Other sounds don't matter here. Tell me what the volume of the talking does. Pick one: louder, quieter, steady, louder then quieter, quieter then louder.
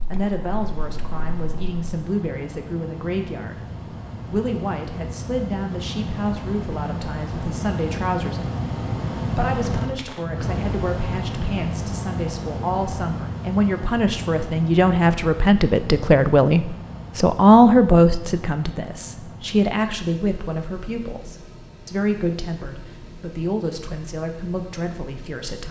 louder then quieter.